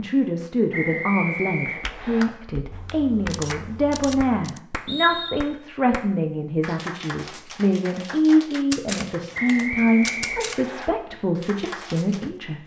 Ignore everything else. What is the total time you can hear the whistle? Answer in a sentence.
The whistle can be heard for 4 seconds in total.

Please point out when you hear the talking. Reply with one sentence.
You can hear the talking from 0.0 to 12.6 s.